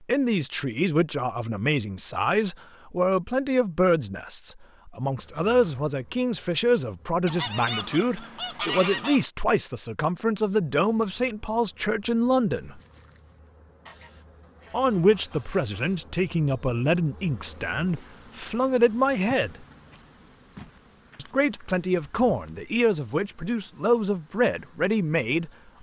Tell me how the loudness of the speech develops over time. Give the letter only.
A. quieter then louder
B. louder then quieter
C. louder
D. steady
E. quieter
D.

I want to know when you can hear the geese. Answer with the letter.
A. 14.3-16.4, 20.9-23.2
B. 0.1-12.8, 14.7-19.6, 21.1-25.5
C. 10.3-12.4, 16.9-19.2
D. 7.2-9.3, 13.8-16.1
D.